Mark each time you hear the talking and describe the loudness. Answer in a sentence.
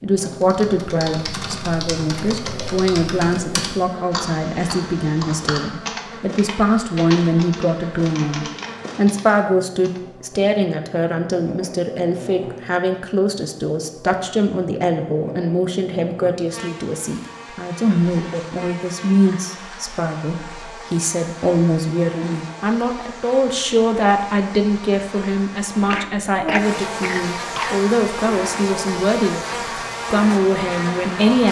The talking can be heard from 0.0 to 31.4 s, at a steady volume.